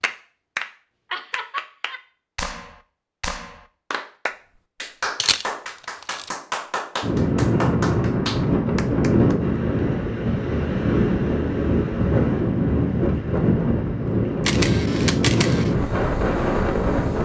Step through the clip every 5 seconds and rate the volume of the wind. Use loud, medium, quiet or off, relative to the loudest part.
off, loud, loud, loud.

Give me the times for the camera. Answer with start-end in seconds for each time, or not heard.
5.2-6.3, 14.4-15.7.